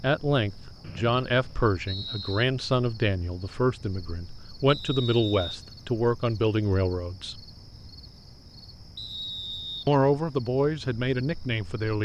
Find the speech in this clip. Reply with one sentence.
The speech can be heard from 0.0 to 7.3 s and from 9.8 to 12.0 s.